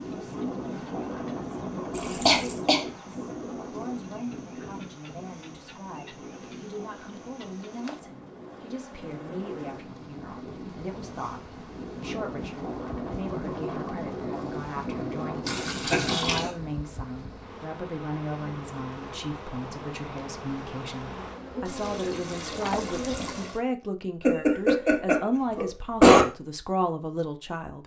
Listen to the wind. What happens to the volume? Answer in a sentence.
The loudness of the wind goes down, then up.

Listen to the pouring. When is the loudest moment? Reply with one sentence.
The loudest moment of the pouring is at 16 seconds.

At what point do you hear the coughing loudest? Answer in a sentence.
The loudest moment of the coughing is at 26 seconds.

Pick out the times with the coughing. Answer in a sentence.
You can hear the coughing from 2.2 to 2.9 s, from 15.9 to 16.5 s and from 24.2 to 26.2 s.